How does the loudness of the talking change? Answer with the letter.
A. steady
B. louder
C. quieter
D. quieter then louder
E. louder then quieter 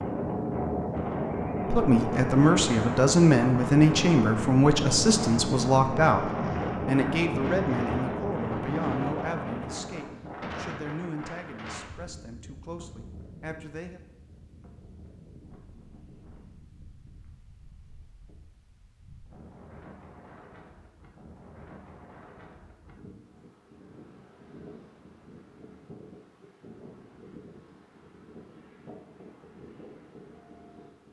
C.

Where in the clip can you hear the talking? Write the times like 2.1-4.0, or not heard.
1.7-14.0.